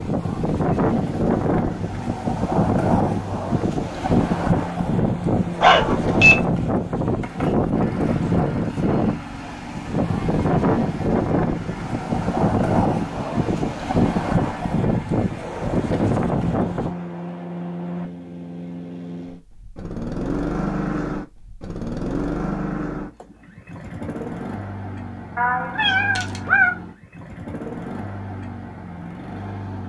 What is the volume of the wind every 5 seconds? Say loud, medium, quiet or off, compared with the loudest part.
loud, loud, loud, loud, off, off.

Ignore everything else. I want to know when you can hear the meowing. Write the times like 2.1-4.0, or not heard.
5.6-6.5, 25.4-26.8.